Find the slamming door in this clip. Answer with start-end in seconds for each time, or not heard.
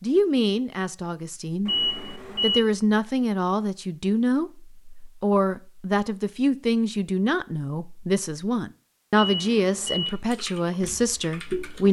not heard.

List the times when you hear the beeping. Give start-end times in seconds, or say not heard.
1.6-2.6, 9.2-10.1.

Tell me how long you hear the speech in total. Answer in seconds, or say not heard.
12 s.